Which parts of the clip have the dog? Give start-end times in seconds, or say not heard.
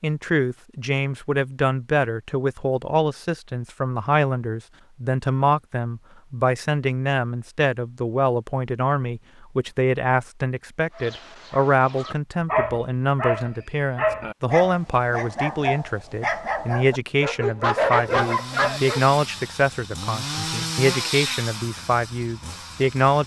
10.9-19.1.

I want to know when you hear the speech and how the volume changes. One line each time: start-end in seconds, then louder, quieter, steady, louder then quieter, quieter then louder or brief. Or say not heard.
0.0-23.2 steady.